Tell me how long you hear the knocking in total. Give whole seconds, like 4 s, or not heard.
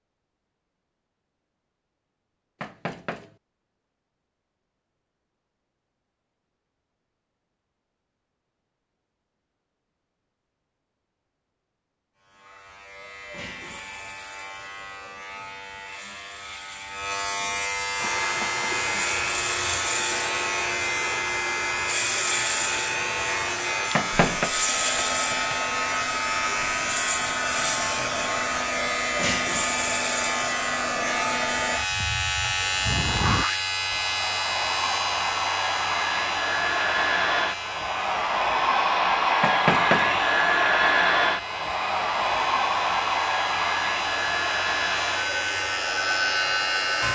2 s.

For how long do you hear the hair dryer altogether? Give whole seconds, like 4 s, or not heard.
29 s.